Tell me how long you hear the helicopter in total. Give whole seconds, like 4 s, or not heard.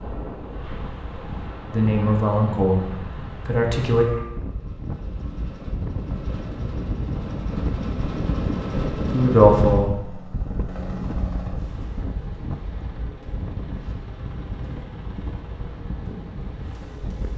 17 s.